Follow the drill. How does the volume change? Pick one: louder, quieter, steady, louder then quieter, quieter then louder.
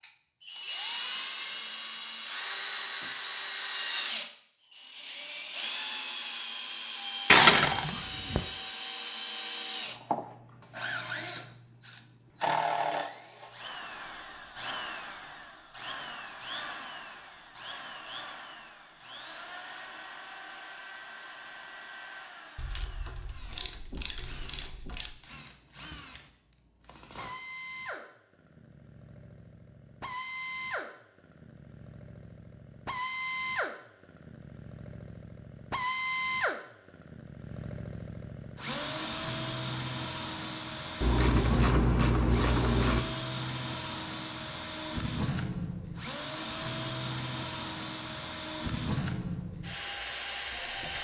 quieter then louder.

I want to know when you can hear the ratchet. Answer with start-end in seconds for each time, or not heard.
7.2-8.4, 22.6-25.1, 41.0-43.0.